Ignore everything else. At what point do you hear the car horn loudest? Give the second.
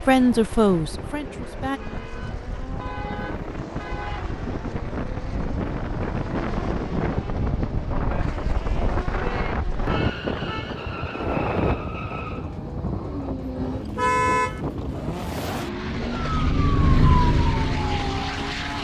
14 s.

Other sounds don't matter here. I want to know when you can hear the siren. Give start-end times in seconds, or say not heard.
15.4-18.7.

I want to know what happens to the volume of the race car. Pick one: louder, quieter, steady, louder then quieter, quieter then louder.
louder.